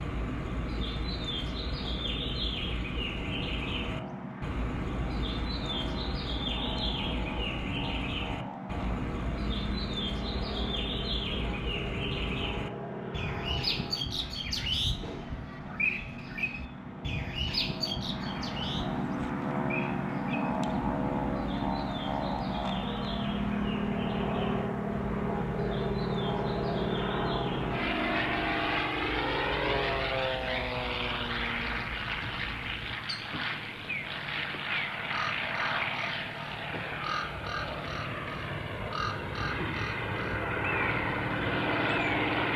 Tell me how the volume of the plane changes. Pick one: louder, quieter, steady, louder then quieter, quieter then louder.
louder.